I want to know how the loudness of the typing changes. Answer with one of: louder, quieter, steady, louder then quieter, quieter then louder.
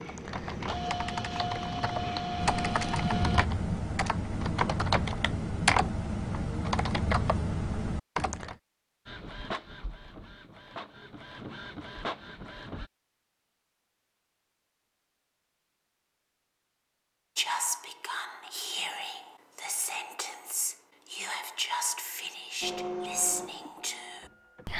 louder.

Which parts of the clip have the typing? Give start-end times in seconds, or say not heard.
0.0-8.6.